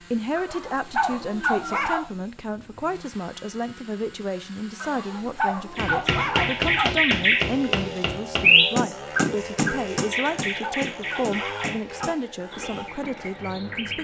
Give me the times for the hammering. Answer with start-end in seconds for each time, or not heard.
5.8-12.2.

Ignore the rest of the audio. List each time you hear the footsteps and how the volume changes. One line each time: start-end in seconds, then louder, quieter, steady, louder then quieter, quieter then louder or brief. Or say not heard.
not heard.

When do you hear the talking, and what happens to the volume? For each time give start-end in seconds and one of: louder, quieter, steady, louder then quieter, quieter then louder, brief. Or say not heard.
0.1-13.9 steady.